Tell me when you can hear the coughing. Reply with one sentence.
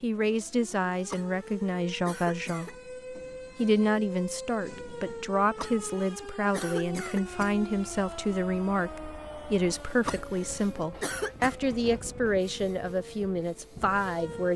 You can hear the coughing from 1.1 to 2.8 s, from 5.5 to 7.5 s and from 10.1 to 11.6 s.